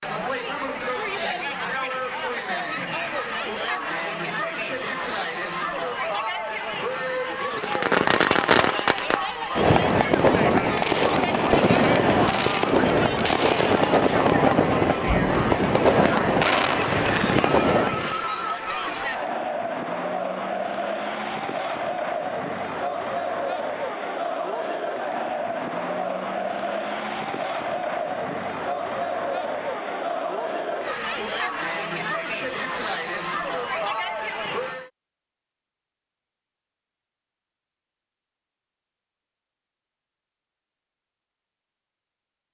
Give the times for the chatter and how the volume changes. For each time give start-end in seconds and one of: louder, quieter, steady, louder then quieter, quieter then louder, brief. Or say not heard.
0.0-34.9 steady.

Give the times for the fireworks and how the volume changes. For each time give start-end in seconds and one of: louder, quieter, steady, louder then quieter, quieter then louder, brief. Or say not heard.
7.5-18.2 steady.